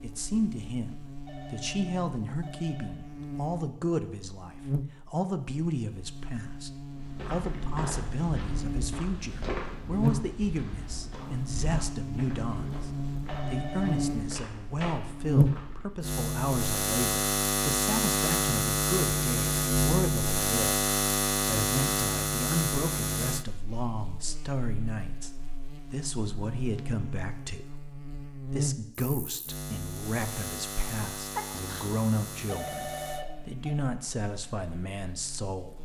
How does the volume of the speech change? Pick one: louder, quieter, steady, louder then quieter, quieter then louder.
steady.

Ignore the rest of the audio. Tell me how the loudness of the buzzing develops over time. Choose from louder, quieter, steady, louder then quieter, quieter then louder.
louder then quieter.